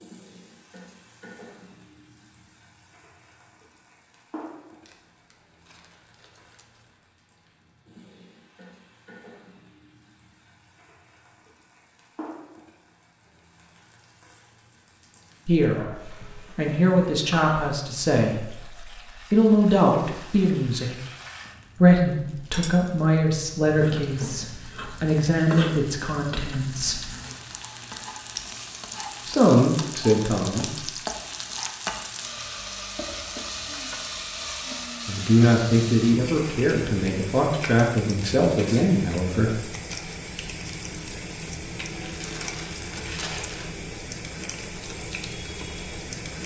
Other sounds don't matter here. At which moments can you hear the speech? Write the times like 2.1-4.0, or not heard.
15.4-21.0, 21.8-27.1, 29.2-30.9, 35.0-39.5.